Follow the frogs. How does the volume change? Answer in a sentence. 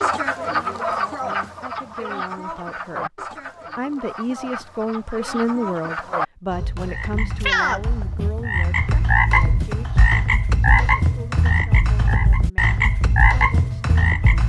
The volume of the frogs goes down, then up.